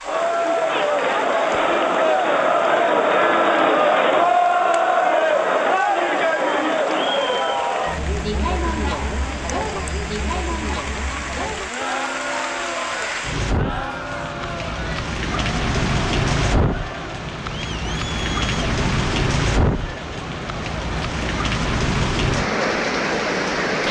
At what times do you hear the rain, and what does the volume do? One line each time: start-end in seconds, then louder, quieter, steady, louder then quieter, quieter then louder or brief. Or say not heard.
0.0-23.8 louder.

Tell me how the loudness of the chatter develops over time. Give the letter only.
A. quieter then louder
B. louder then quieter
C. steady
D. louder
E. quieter
E.